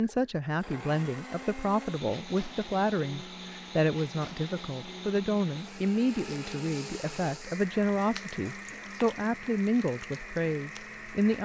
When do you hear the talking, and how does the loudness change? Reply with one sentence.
The talking can be heard from 0.0 to 11.4 s, at a steady volume.